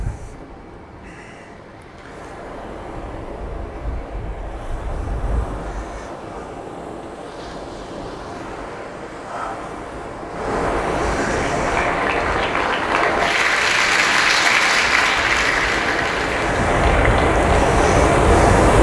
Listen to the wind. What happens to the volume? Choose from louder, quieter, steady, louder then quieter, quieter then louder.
louder.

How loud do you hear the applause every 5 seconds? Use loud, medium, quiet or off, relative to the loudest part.
off, off, loud, loud.